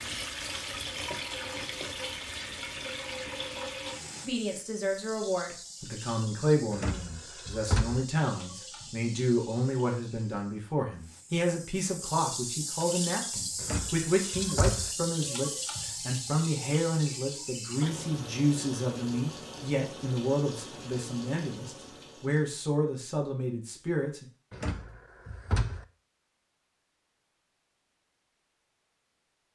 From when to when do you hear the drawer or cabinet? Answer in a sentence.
The drawer or cabinet can be heard from 6.7 to 8.1 s, from 13.6 to 14.9 s and from 24.5 to 25.9 s.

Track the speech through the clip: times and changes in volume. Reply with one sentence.
The speech can be heard from 4.2 to 24.2 s, at a steady volume.